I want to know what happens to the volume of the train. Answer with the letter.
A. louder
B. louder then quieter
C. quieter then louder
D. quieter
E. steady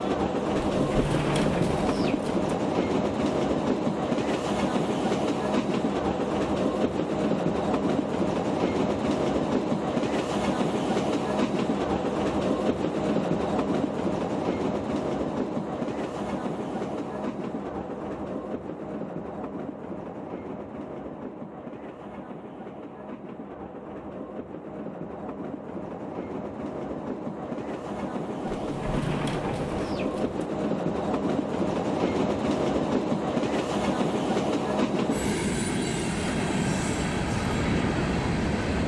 C.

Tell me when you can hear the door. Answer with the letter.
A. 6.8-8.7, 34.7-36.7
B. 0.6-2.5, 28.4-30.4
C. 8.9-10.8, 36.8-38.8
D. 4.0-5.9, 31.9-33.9
B.